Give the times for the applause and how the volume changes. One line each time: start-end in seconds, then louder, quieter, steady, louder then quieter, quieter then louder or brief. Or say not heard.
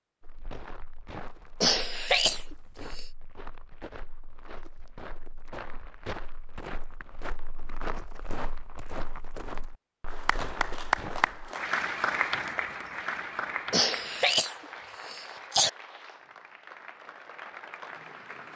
10.1-18.5 quieter.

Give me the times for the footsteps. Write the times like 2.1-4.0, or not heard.
0.2-11.5.